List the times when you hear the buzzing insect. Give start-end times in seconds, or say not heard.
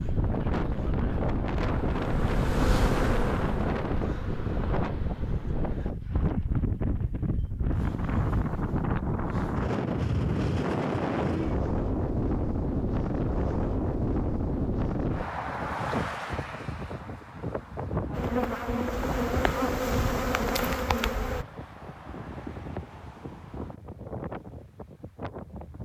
0.0-5.9, 18.1-21.4.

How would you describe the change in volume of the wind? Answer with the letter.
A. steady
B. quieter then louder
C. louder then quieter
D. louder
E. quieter
E.